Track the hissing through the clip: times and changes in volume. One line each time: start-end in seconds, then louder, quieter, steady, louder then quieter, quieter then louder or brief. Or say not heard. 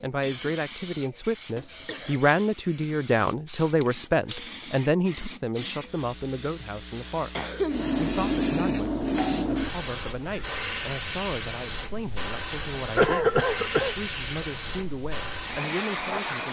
0.0-16.4 louder.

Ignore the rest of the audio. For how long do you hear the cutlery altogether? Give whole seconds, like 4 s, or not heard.
not heard.